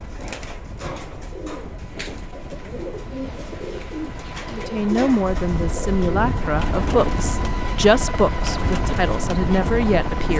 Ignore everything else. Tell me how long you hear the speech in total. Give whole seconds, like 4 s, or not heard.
6 s.